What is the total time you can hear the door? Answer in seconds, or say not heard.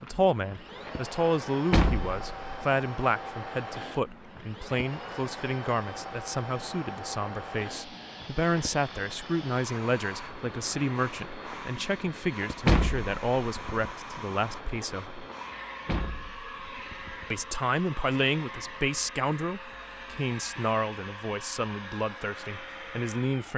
4 s.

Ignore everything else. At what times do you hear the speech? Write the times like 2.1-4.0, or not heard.
0.0-15.2, 17.3-23.5.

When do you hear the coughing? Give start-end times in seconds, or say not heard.
not heard.